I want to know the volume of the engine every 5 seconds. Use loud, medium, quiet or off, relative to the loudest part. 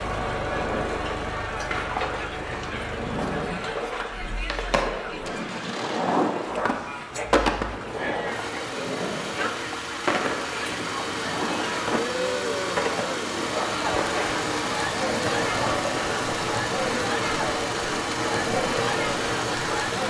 medium, medium, loud, loud.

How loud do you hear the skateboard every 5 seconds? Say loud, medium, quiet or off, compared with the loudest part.
loud, loud, loud, medium.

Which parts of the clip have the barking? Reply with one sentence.
You can hear the barking from 6.5 to 7.3 s and from 13.5 to 14.3 s.